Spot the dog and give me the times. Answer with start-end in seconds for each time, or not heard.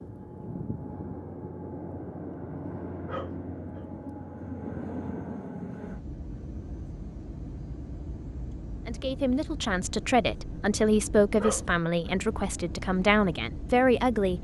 3.0-3.9, 11.3-12.2.